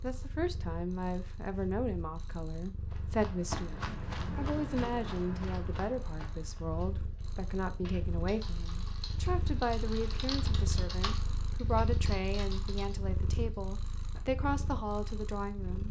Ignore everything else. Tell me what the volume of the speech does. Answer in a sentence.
The volume of the speech stays about the same.